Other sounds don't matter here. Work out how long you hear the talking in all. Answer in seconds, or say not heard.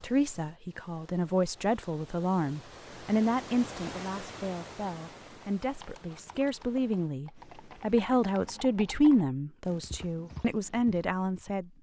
12 s.